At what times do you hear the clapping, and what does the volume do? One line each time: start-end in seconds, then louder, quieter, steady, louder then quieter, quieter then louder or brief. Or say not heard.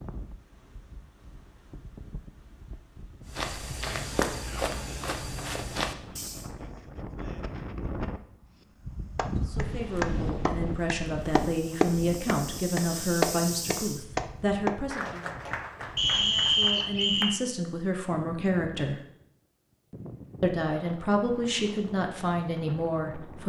9.2-17.4 louder then quieter.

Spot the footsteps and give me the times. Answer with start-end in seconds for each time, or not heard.
3.2-6.5, 11.3-14.1.